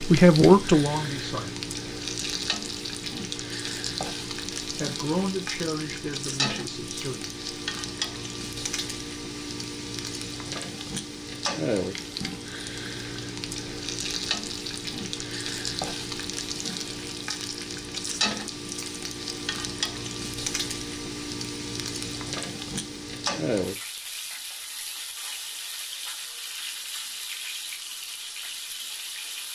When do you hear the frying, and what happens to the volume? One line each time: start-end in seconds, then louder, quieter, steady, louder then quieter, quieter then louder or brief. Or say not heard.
0.0-29.5 steady.